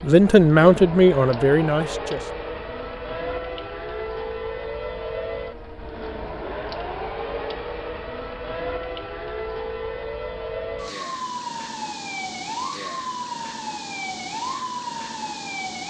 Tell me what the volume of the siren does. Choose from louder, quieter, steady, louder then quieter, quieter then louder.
steady.